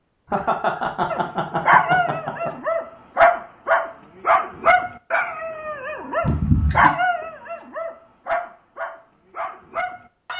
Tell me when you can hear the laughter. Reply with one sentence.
You can hear the laughter from 0.3 to 2.5 s and from 6.2 to 6.9 s.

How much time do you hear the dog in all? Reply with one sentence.
The dog can be heard for 9 seconds in total.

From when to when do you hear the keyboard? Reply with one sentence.
The keyboard can't be heard in this clip.